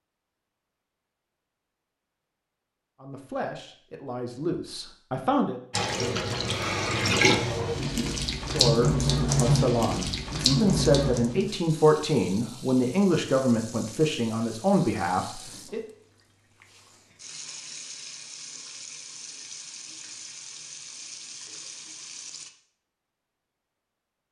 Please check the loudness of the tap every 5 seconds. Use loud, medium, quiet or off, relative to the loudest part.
off, loud, medium, quiet, quiet.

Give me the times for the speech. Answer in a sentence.
The speech can be heard from 3.0 to 5.6 s and from 8.5 to 15.8 s.